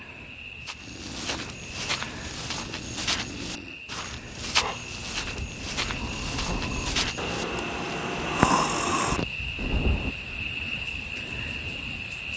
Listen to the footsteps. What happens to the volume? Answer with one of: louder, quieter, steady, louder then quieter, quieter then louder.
louder.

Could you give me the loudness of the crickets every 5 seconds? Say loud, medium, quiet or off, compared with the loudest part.
medium, loud, loud.